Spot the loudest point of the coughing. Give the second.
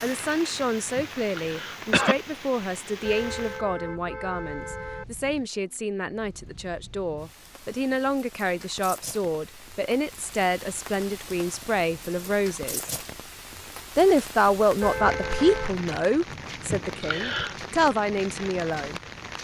2 s.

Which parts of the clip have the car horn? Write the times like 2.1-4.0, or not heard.
3.0-5.0, 14.8-15.7.